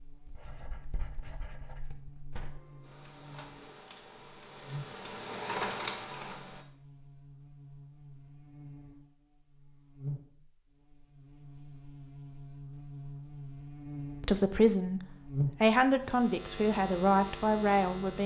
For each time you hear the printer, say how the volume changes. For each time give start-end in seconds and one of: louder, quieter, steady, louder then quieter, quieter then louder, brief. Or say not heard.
2.3-6.7 louder.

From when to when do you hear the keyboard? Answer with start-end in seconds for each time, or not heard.
not heard.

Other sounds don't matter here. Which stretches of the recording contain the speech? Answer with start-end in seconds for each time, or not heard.
14.2-18.2.